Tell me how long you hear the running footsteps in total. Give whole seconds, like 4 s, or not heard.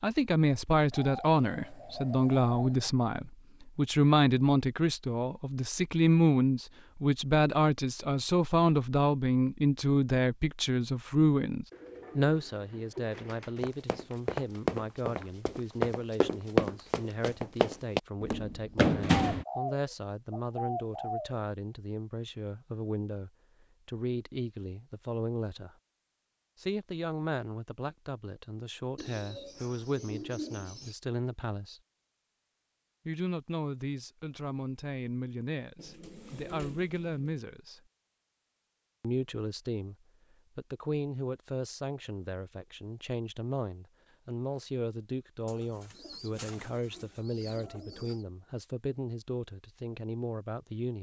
6 s.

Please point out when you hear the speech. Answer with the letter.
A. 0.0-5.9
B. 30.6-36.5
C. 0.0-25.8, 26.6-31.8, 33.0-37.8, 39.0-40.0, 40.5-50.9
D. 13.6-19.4
C.